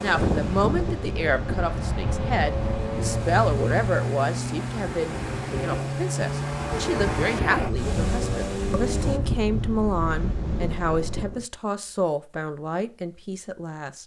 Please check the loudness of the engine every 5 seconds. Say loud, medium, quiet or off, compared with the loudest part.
loud, loud, off.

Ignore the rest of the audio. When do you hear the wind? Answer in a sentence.
You can hear the wind from 0.0 to 11.4 s.